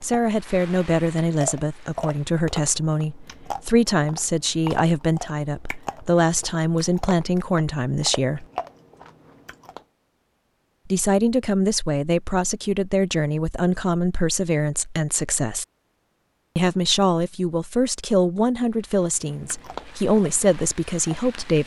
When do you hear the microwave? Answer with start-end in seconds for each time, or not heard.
not heard.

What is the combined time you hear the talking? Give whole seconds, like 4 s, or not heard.
18 s.